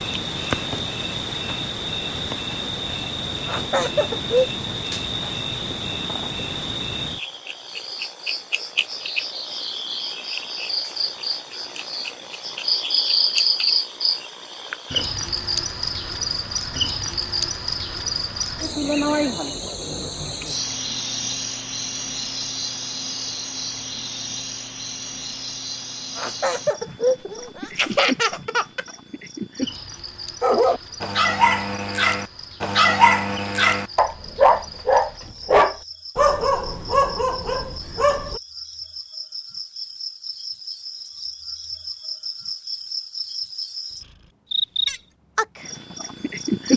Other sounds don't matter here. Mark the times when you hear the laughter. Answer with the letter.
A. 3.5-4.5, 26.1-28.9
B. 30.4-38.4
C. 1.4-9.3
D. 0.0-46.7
A.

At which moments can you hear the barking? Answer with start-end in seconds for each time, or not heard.
30.4-38.4.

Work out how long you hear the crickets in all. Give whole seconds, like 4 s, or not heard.
47 s.